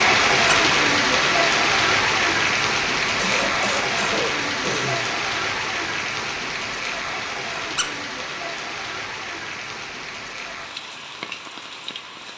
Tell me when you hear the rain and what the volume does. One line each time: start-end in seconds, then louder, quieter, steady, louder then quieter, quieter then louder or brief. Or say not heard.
0.0-12.3 quieter.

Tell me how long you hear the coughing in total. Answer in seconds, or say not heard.
2 s.